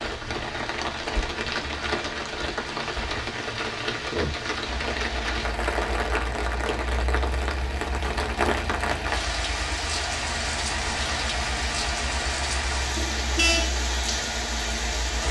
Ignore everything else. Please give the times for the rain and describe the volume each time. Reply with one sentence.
The rain can be heard from 0.0 to 15.2 s, at a steady volume.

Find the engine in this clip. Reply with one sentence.
You can hear the engine from 4.7 to 15.2 s.